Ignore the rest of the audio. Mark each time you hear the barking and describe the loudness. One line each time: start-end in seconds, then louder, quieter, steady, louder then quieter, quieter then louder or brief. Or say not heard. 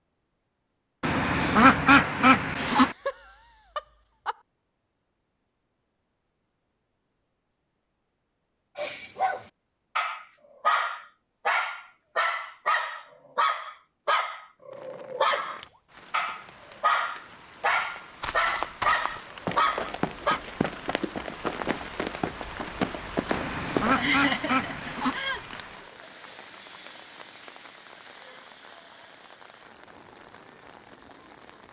8.8-20.4 steady.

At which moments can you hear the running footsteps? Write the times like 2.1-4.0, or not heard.
18.2-23.9.